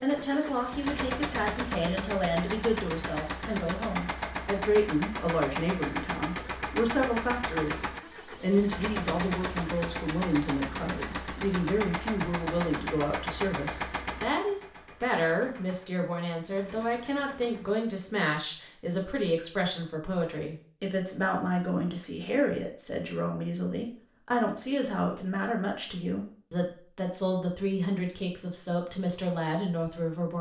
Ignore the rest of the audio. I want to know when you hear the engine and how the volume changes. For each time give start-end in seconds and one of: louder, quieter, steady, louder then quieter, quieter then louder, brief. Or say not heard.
0.0-17.8 quieter.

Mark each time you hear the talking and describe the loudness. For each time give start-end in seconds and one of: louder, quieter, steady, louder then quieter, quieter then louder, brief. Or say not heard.
0.0-30.3 steady.